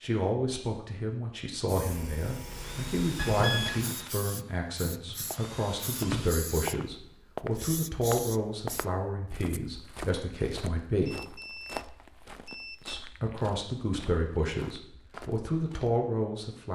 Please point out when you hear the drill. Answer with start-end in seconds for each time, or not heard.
2.5-6.3.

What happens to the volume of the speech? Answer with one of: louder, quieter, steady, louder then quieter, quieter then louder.
steady.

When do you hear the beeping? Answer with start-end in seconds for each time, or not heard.
3.1-3.9, 11.1-13.0.